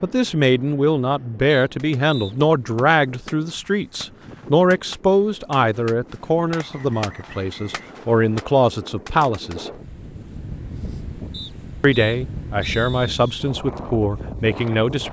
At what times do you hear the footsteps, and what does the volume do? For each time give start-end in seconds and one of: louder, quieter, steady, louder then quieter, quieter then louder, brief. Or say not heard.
not heard.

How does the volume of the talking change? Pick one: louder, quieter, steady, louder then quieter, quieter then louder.
steady.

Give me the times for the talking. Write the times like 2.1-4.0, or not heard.
0.0-9.7, 11.8-15.0.